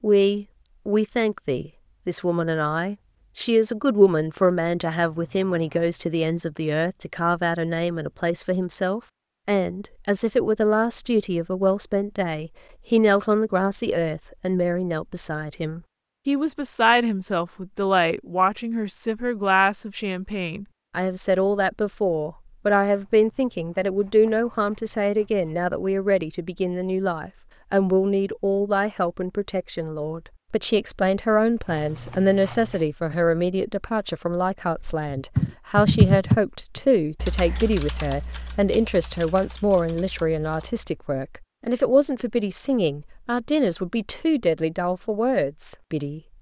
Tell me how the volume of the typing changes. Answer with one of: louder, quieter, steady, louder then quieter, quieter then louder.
quieter.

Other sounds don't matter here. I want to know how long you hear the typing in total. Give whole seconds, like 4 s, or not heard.
6 s.